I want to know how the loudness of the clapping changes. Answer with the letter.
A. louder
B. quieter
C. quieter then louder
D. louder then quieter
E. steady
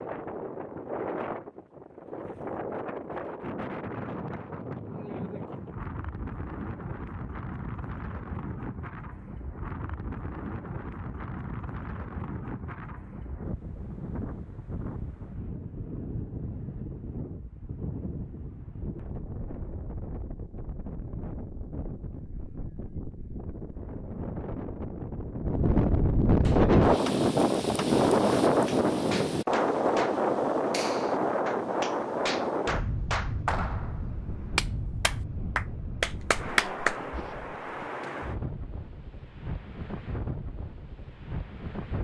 A.